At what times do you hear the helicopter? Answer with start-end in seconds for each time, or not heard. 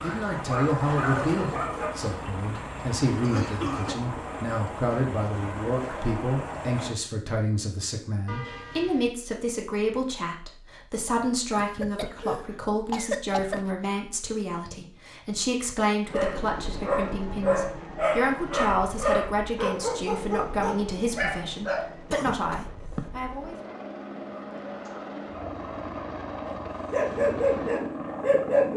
0.0-7.0, 16.1-28.7.